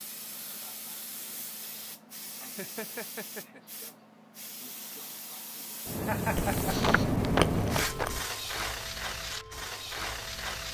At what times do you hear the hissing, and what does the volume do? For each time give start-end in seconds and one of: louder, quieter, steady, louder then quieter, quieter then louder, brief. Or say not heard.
0.0-10.6 louder then quieter.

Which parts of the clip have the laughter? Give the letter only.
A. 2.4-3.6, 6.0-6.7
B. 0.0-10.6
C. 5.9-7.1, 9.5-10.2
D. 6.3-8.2
A.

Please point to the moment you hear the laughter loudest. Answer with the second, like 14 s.
6 s.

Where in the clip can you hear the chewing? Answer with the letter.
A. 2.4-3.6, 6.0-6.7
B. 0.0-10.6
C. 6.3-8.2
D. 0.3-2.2
C.